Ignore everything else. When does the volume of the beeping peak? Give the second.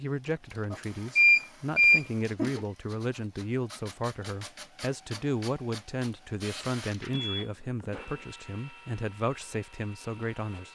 1 s.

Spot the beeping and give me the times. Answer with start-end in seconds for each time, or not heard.
0.7-2.6, 7.1-8.2.